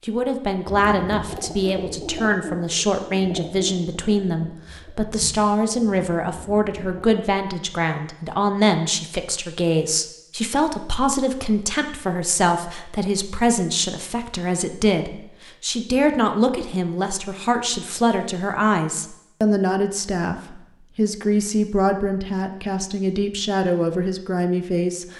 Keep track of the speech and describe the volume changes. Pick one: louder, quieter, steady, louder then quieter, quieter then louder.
steady.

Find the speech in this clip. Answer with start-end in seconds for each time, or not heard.
0.1-25.1.